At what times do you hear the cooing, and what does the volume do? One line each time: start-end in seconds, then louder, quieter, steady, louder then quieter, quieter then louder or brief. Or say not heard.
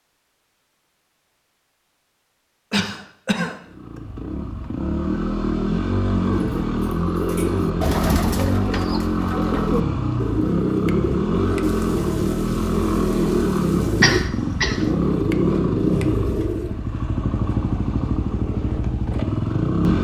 6.3-16.8 steady.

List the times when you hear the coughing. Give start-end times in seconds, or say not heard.
2.7-4.0, 14.0-14.9.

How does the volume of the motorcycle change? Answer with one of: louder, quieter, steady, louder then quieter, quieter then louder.
steady.